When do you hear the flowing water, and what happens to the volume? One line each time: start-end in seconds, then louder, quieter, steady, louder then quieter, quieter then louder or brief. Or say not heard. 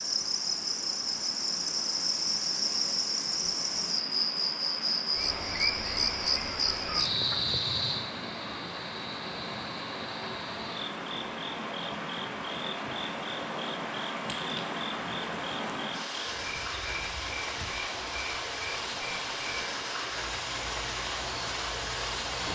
0.0-22.5 louder.